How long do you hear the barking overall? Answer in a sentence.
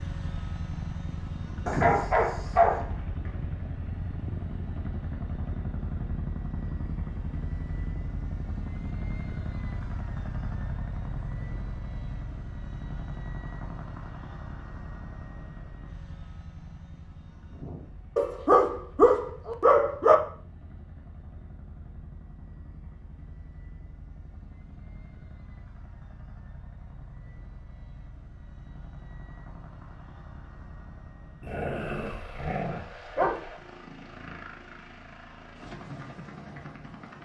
You can hear the barking for 6 seconds altogether.